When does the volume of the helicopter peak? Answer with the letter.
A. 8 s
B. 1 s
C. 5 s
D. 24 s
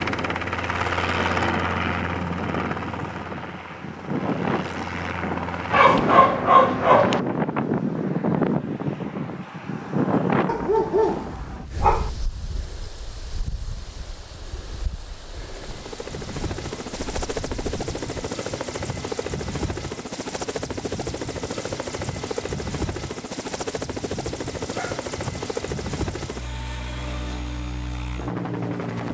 B.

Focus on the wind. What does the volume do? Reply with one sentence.
The loudness of the wind goes up, then down.